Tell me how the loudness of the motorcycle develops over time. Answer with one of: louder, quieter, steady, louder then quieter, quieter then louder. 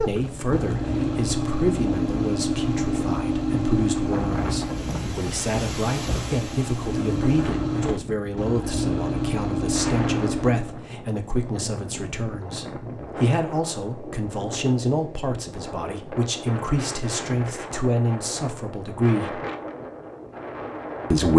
quieter then louder.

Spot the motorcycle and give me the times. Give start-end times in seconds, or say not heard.
0.0-10.8.